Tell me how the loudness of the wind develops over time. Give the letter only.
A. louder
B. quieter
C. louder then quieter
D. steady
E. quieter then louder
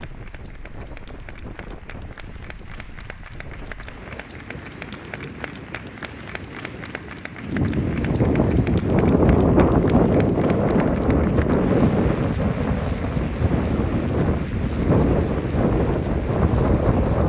A.